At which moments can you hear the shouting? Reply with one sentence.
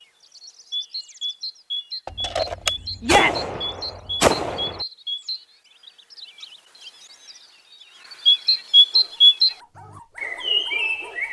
The shouting can be heard from 3.0 to 3.5 s.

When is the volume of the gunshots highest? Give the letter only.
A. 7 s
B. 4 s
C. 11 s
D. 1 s
B.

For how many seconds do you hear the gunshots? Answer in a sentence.
You can hear the gunshots for 3 seconds altogether.